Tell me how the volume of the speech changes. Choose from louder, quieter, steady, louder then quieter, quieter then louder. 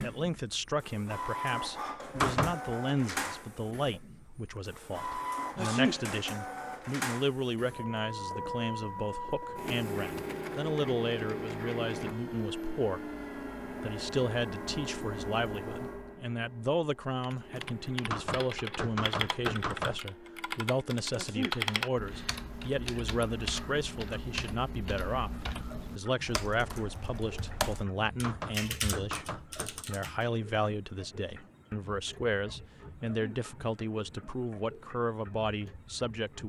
steady.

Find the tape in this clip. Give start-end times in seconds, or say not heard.
not heard.